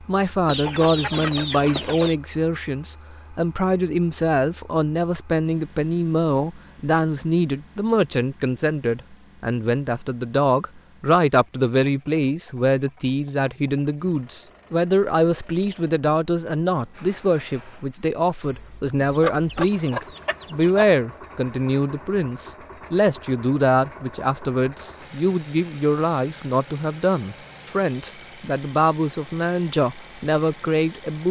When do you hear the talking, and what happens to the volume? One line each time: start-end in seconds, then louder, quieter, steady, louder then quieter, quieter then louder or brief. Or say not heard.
0.0-31.2 steady.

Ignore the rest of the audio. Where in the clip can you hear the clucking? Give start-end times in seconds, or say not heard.
0.5-2.1, 19.0-20.9.